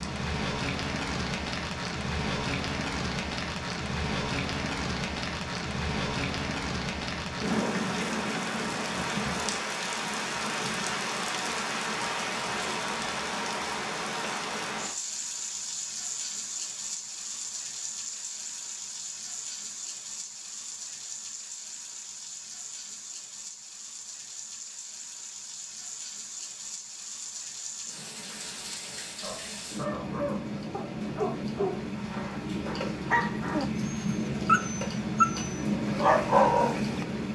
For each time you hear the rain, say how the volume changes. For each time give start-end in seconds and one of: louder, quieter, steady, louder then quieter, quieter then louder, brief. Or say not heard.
0.0-37.2 quieter then louder.